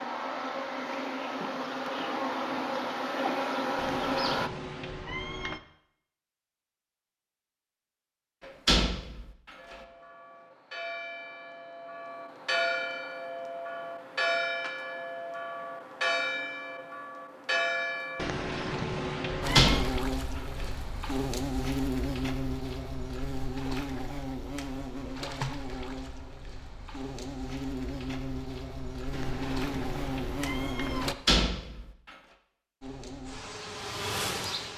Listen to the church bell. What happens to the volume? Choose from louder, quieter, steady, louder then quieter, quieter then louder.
louder.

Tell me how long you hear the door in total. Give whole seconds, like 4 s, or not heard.
3 s.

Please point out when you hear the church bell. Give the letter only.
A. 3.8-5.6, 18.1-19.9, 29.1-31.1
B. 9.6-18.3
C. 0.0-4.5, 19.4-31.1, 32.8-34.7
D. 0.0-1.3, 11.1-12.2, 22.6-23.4
B.